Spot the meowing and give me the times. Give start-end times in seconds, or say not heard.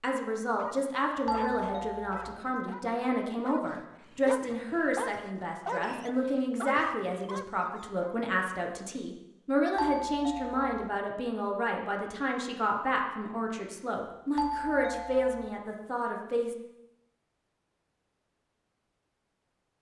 not heard.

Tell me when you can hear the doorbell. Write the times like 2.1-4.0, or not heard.
1.2-2.4, 9.8-10.9, 14.3-15.5.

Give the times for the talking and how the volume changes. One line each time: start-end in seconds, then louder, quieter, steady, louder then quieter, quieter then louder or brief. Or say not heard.
0.0-16.6 steady.